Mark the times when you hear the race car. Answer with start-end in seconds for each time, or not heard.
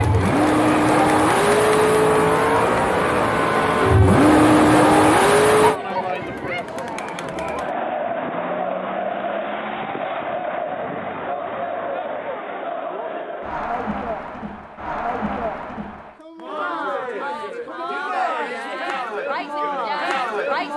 0.0-5.8.